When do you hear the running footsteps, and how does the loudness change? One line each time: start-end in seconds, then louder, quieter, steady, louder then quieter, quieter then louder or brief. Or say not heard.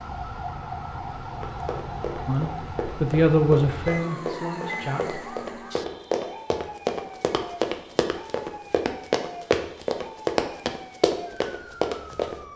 1.4-12.4 louder.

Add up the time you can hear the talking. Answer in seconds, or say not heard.
3 s.